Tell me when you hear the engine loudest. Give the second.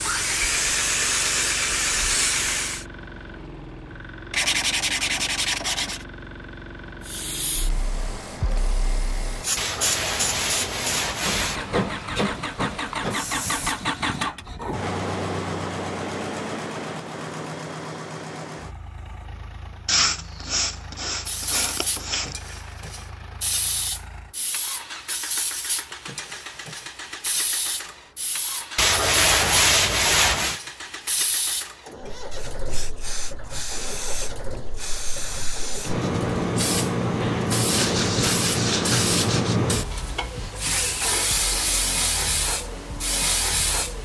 14 s.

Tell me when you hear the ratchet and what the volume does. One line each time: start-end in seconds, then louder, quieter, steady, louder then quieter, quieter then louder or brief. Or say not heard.
not heard.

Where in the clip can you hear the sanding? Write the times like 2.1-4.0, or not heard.
4.3-6.0, 9.6-11.6, 19.9-22.4, 28.8-30.6, 37.6-39.6.